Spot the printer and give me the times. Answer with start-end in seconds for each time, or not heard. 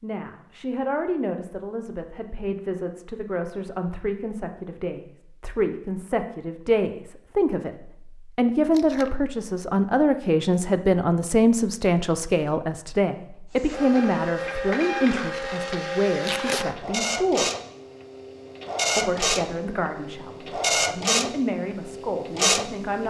13.6-23.0.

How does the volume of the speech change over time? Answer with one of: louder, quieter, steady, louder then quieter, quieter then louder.
louder then quieter.